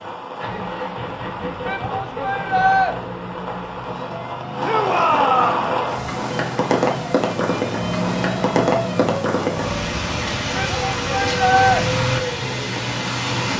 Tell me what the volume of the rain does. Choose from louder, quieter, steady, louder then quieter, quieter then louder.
louder.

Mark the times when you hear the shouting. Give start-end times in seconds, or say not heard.
1.6-3.0, 4.6-5.7, 10.6-11.8.